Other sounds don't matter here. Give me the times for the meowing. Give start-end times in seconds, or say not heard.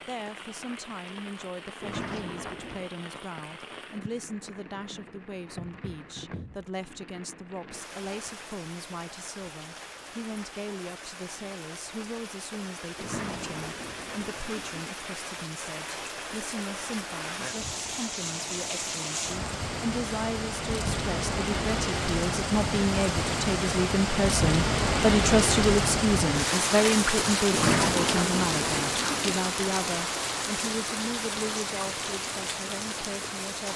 not heard.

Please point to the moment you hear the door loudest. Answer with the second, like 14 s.
28 s.